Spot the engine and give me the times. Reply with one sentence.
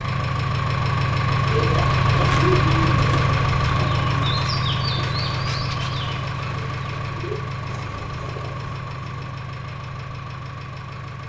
The engine can be heard from 0.0 to 11.2 s.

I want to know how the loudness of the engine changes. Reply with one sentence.
The loudness of the engine goes down.